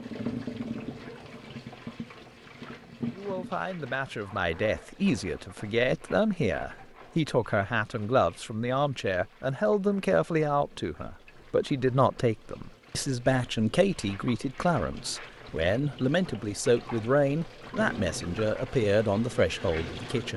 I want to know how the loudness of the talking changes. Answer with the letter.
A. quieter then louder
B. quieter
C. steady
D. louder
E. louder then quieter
C.